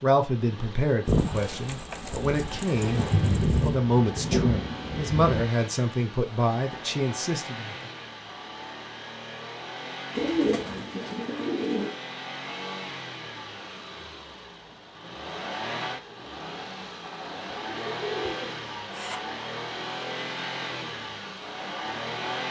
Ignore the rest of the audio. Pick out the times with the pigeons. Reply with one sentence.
You can hear the pigeons from 1.1 to 3.8 s, from 10.2 to 11.9 s and from 17.4 to 19.1 s.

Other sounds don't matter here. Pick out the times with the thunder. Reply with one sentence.
The thunder can be heard from 2.8 to 5.5 s.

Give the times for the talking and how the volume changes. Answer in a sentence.
The talking can be heard from 0.0 to 7.8 s, at a steady volume.